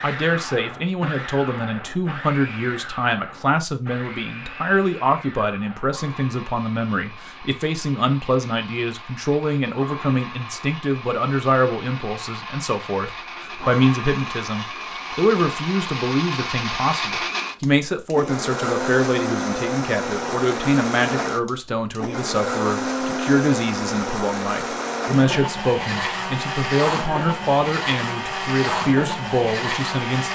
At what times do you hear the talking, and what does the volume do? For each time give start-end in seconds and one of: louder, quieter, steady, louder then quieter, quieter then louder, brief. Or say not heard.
0.0-30.3 steady.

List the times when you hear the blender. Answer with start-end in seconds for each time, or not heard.
0.0-30.3.